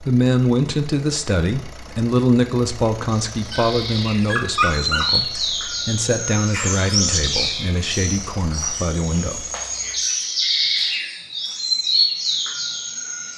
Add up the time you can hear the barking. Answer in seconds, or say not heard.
2 s.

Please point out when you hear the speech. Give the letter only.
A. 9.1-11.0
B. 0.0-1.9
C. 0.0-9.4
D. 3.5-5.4
C.